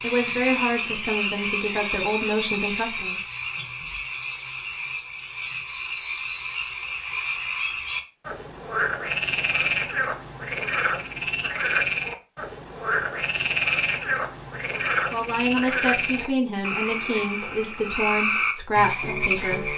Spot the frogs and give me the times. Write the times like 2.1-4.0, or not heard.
0.0-19.7.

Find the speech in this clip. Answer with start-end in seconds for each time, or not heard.
0.0-3.2, 15.1-19.7.